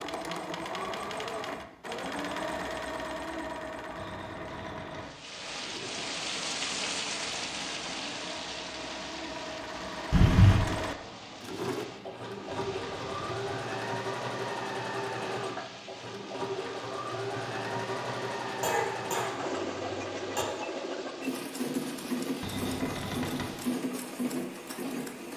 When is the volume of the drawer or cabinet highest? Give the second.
23 s.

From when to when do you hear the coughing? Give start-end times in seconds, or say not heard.
10.1-10.8, 18.6-20.4.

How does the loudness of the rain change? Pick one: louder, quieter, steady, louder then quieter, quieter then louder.
quieter.